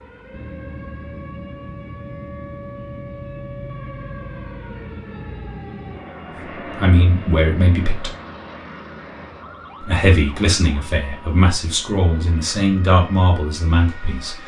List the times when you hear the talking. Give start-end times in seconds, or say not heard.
6.8-8.2, 9.8-14.4.